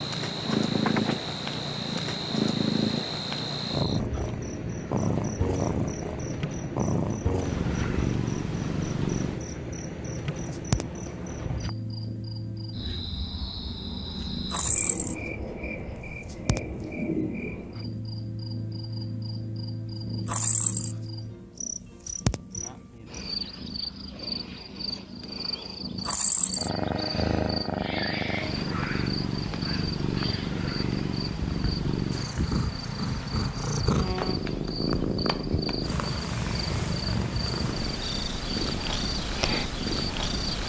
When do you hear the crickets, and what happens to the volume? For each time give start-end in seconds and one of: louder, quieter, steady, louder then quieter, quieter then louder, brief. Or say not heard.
0.0-40.6 steady.